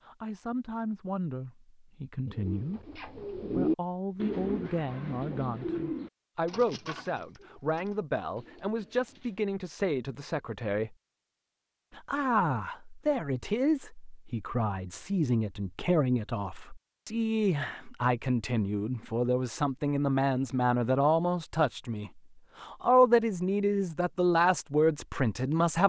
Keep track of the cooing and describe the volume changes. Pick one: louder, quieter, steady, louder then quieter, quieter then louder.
quieter.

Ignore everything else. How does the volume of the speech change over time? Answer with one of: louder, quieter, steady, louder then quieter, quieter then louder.
louder.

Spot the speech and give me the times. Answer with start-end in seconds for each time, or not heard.
0.1-10.9, 11.9-25.8.